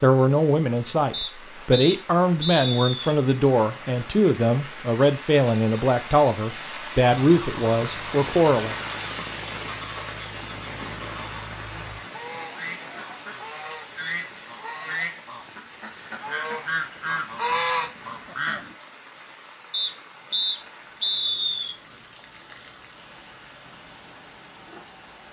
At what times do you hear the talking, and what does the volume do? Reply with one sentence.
The talking can be heard from 0.0 to 8.8 s, at a steady volume.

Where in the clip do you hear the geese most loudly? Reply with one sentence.
The volume of the geese peaks at 18 seconds.